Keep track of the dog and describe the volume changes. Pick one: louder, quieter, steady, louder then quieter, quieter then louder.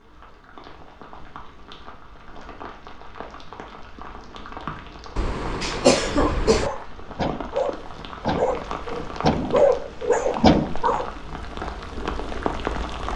louder.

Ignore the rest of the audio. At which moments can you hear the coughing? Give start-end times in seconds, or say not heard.
5.2-6.7.